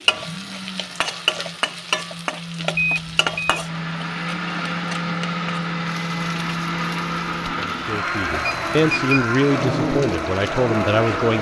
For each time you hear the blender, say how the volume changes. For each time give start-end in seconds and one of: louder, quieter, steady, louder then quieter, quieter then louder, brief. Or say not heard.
0.0-11.3 louder.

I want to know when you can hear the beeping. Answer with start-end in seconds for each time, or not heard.
2.8-3.6, 8.4-9.2.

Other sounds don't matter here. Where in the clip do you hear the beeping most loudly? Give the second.
3 s.